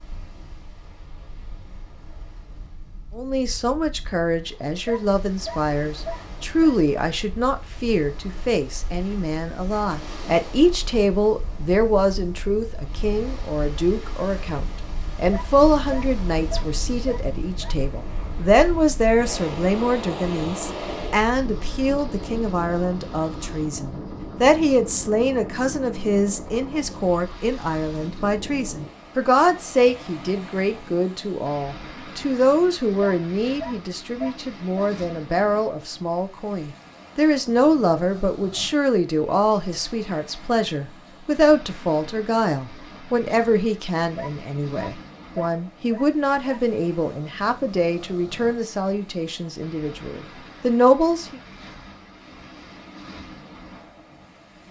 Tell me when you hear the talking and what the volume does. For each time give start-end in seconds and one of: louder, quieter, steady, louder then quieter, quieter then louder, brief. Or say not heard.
3.1-51.4 steady.